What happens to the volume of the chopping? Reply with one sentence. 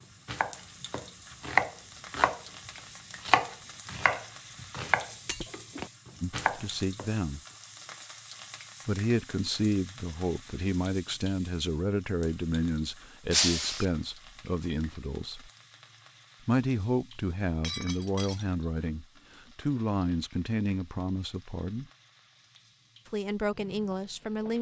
The loudness of the chopping goes down.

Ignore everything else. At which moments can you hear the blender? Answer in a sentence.
The blender can't be heard in this clip.